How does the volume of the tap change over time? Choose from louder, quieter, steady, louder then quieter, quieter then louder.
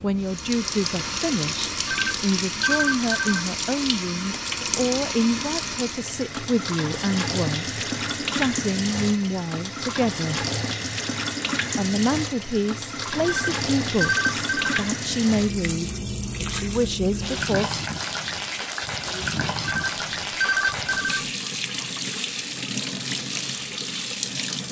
steady.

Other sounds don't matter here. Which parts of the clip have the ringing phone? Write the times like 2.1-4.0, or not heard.
1.9-3.5, 13.2-14.8, 19.6-21.3.